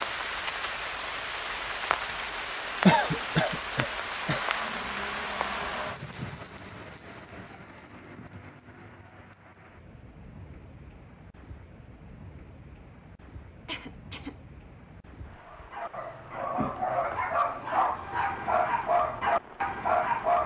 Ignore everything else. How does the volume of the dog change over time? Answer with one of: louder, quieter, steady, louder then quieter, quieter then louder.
louder.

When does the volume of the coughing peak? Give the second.
3 s.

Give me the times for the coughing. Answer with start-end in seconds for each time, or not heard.
2.9-4.4, 13.7-14.3.